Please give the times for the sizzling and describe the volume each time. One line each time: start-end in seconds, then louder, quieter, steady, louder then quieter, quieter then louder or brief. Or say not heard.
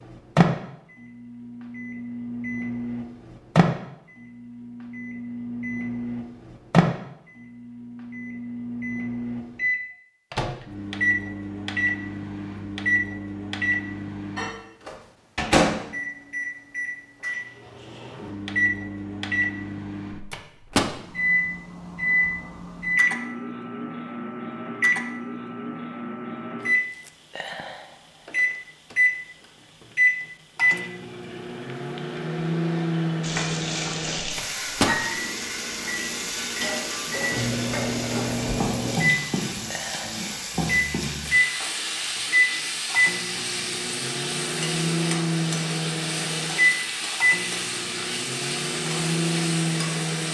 33.2-50.2 steady.